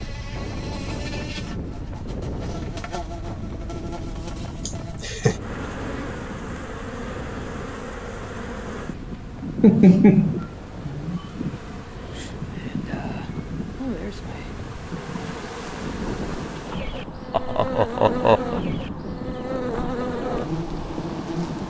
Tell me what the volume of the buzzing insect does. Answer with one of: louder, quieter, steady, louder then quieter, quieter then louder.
louder.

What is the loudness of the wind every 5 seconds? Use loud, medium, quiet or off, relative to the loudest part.
loud, medium, medium, loud, loud.